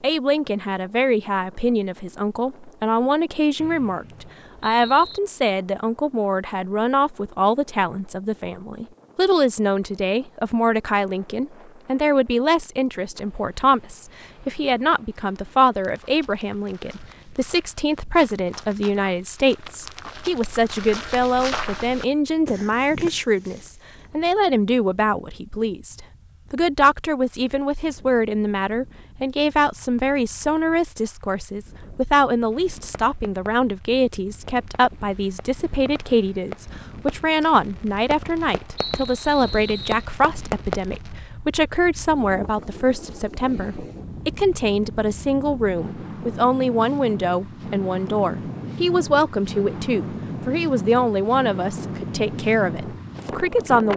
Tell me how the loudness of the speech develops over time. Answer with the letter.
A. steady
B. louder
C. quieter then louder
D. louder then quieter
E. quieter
A.